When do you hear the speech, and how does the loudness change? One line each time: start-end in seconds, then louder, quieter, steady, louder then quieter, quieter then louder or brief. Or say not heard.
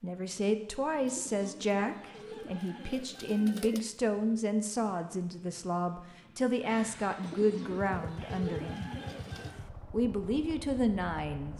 0.0-8.9 steady
9.9-11.5 brief.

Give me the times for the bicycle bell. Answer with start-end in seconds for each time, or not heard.
not heard.